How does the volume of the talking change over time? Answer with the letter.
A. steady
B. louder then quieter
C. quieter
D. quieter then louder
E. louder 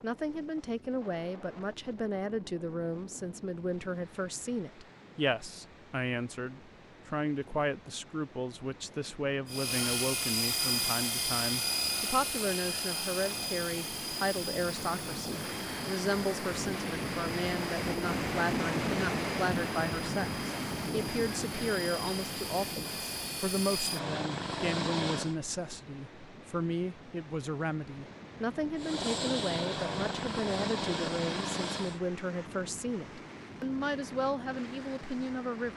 A.